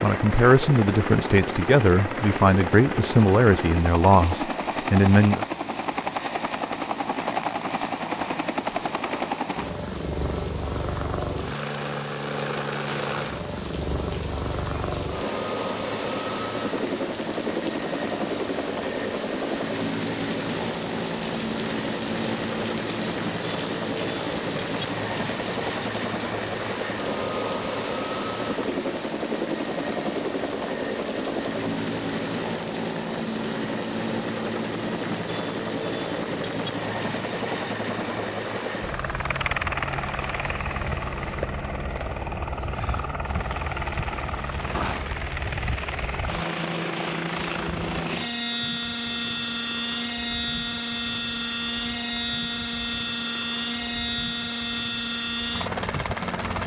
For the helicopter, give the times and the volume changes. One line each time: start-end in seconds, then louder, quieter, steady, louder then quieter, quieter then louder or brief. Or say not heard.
0.0-56.6 steady.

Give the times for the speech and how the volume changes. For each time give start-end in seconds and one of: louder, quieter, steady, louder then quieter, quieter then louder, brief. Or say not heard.
0.0-5.5 steady.